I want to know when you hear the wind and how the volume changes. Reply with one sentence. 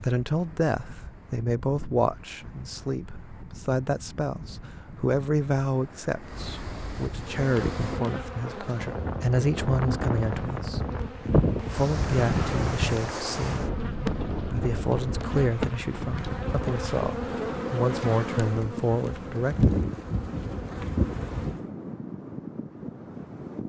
You can hear the wind from 0.0 to 23.6 s, getting louder then quieter.